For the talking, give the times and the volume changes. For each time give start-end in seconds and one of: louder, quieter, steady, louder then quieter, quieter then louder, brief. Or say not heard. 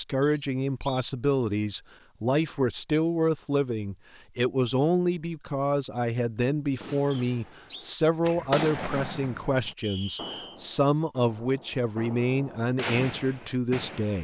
0.0-14.1 steady.